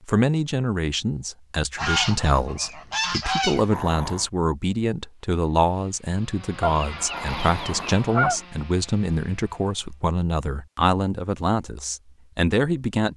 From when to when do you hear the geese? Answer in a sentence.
The geese can be heard from 1.8 to 3.6 s and from 6.6 to 8.4 s.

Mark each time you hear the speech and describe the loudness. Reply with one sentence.
You can hear the speech from 0.1 to 13.1 s, at a steady volume.